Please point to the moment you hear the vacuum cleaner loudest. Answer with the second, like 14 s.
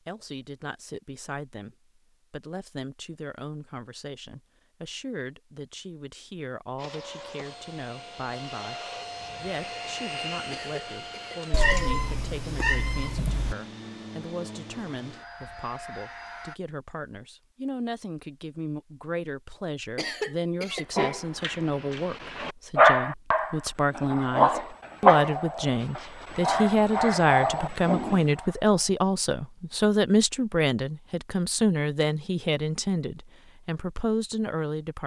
10 s.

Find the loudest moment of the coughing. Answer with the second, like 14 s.
20 s.